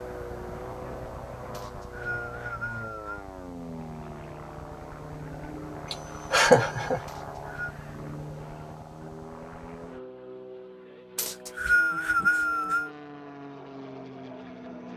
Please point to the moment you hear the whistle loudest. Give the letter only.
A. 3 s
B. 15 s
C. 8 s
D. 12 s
D.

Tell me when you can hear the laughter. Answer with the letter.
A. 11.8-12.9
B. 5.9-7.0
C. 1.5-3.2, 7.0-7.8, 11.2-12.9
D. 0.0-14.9
B.